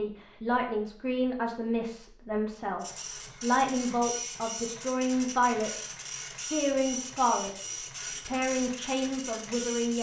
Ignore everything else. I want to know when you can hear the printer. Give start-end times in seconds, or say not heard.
2.8-9.9.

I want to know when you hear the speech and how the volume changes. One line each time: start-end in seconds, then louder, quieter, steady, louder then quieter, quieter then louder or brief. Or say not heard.
0.0-9.9 steady.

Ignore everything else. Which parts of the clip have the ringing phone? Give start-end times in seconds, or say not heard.
not heard.